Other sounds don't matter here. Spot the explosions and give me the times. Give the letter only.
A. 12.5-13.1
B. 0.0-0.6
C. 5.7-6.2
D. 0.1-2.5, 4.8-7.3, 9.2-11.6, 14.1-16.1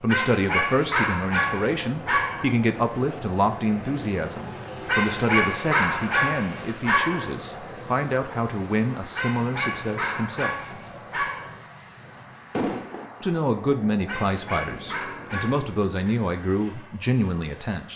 A.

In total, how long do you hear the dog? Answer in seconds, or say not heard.
9 s.